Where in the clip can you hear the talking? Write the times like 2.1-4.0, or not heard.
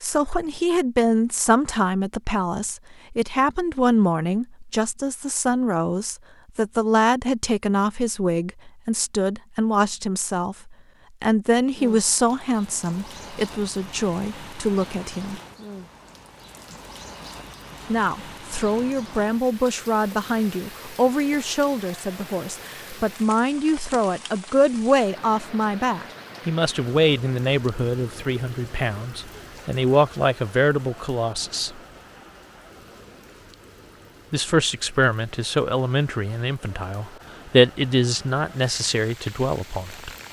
0.0-15.4, 17.9-31.8, 34.3-40.1.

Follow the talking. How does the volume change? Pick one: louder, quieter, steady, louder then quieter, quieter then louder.
steady.